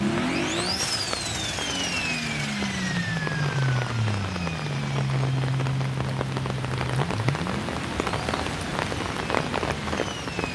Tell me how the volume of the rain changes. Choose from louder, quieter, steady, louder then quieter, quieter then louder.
louder.